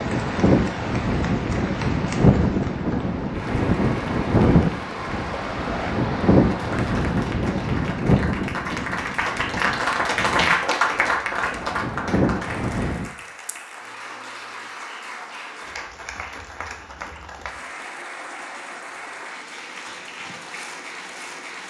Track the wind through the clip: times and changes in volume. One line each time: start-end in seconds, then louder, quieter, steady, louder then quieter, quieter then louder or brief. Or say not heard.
0.0-13.1 quieter.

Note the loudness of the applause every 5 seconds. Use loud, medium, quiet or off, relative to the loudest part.
medium, loud, loud, medium, medium.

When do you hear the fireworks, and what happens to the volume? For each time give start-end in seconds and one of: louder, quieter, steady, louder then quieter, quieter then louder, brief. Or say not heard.
not heard.